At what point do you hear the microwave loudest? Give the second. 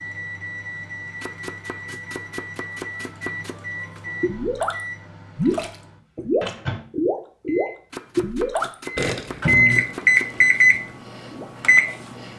10 s.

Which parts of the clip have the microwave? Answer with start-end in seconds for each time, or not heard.
0.0-7.8, 8.7-12.3.